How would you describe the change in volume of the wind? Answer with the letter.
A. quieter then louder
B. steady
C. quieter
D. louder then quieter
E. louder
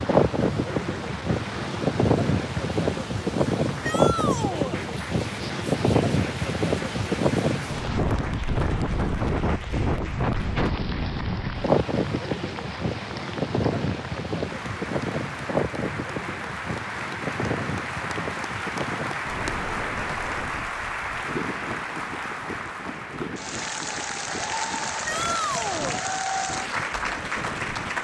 C.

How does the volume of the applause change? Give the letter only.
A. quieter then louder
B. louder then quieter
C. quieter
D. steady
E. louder
E.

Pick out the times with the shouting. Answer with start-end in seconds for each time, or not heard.
3.8-4.8, 25.1-26.0.